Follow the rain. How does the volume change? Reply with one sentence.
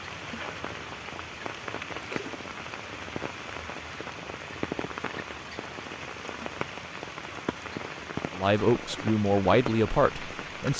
The loudness of the rain stays about the same.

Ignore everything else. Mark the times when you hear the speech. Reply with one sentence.
You can hear the speech from 8.3 to 10.7 s.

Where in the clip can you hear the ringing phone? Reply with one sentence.
The ringing phone can't be heard in this clip.